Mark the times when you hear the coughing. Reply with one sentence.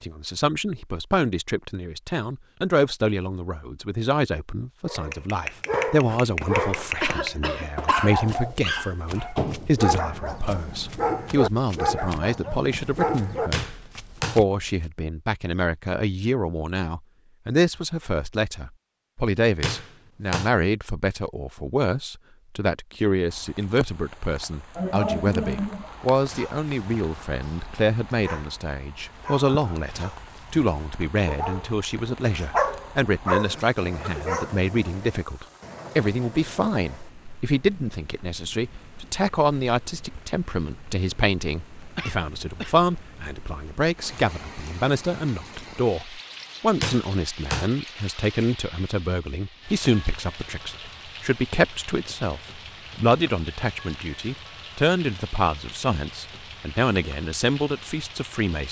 You can hear the coughing from 7.0 to 8.3 s, from 24.8 to 25.9 s and from 42.0 to 42.8 s.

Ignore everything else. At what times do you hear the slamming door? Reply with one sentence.
The slamming door can be heard from 13.5 to 14.4 s, from 19.6 to 20.5 s and from 46.8 to 47.7 s.